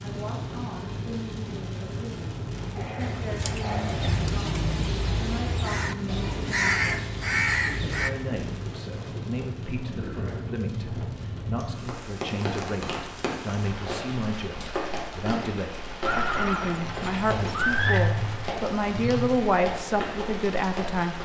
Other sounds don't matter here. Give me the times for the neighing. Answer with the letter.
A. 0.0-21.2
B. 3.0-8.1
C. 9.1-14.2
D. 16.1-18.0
D.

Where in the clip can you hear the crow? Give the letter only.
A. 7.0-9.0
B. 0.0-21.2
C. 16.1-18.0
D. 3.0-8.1
D.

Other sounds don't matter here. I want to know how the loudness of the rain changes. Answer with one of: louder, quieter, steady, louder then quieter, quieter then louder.
steady.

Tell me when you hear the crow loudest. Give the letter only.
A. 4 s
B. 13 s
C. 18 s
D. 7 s
D.